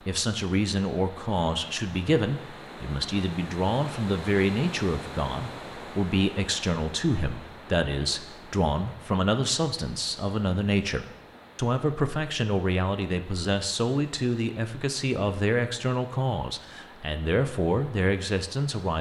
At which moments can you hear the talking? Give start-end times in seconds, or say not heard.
0.1-18.9.